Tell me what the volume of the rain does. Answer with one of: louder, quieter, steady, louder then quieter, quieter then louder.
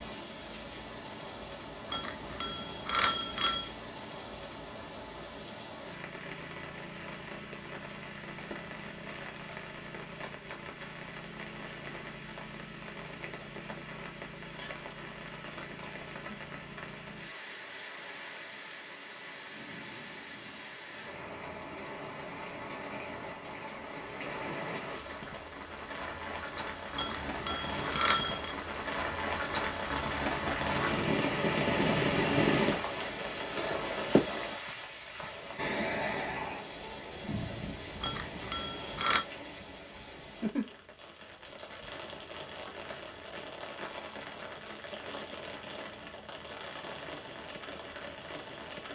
louder then quieter.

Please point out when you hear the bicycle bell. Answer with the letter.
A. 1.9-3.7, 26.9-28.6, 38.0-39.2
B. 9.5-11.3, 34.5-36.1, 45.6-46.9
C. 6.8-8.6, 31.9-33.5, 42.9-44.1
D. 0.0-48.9
A.